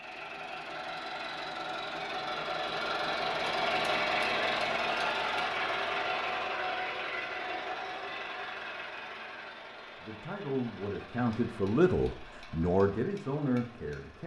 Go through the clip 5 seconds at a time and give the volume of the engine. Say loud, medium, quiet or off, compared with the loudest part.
loud, loud, quiet.